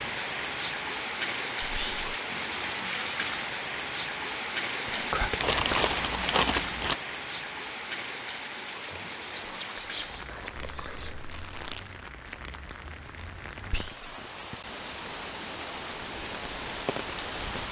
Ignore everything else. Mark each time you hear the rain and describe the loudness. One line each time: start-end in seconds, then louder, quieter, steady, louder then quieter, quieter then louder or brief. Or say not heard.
0.0-17.6 quieter then louder.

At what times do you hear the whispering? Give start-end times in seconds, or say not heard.
1.6-2.1, 4.8-6.0, 8.8-11.2, 13.7-14.1.